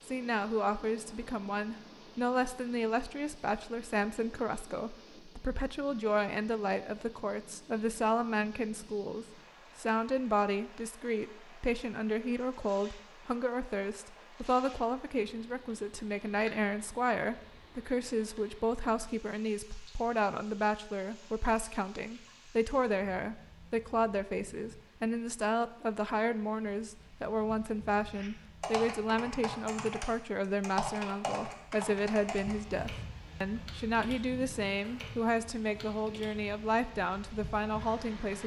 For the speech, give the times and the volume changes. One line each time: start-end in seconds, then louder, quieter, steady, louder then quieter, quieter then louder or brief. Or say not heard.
0.1-38.4 steady.